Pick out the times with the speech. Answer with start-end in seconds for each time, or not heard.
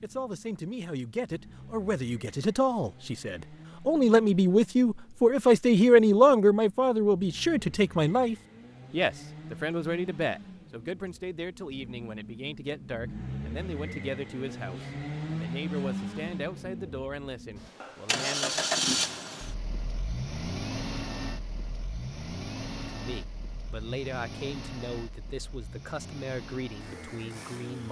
0.0-18.6, 22.9-27.8.